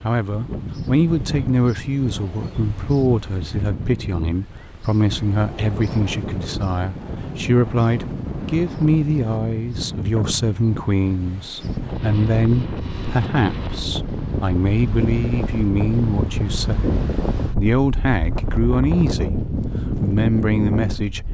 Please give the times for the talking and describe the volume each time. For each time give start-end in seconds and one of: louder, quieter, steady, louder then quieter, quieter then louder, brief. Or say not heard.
0.0-21.2 steady.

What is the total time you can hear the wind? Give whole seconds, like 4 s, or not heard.
21 s.